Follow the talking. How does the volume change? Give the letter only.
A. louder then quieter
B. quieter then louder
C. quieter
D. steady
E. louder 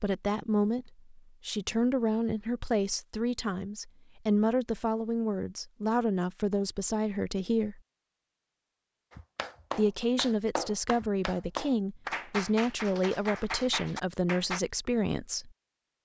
D.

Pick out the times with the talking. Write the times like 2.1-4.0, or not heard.
0.0-7.8, 9.8-15.5.